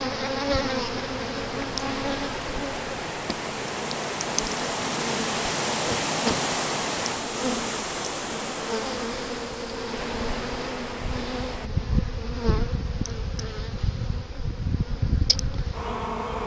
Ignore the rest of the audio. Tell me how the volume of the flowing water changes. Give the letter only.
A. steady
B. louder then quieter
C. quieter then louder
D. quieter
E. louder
B.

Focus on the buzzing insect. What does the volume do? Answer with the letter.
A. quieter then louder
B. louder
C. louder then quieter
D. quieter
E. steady
E.